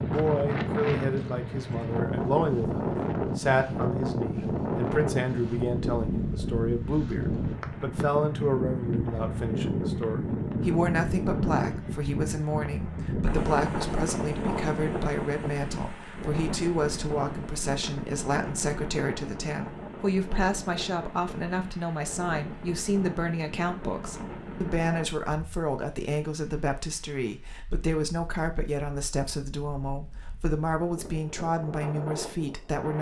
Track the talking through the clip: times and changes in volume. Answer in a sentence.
The talking can be heard from 0.0 to 32.9 s, at a steady volume.